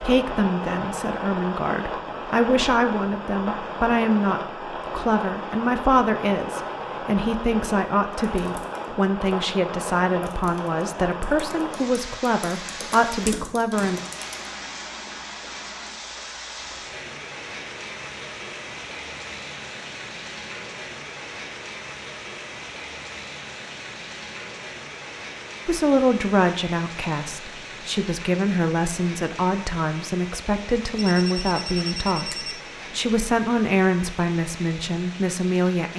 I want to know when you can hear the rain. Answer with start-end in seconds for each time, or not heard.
0.0-35.9.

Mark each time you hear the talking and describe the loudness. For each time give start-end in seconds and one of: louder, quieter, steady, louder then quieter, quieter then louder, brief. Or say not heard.
0.0-14.0 steady
25.6-35.9 steady.